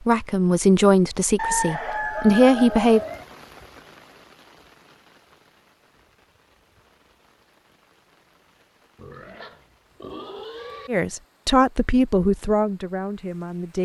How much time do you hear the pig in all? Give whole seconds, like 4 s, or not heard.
2 s.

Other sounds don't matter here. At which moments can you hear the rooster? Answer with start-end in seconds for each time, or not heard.
1.4-3.2.